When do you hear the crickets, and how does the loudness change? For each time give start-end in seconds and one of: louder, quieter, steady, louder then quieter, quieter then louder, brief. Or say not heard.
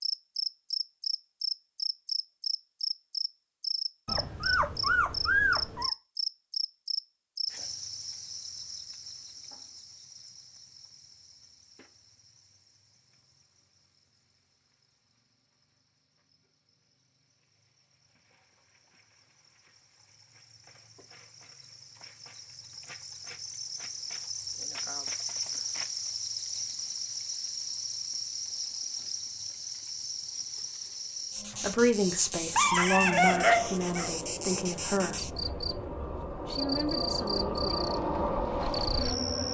0.0-39.4 quieter then louder.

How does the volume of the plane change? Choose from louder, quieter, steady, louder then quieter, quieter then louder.
louder.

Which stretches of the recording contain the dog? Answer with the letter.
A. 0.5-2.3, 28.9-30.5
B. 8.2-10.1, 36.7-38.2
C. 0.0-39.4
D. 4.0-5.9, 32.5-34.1
D.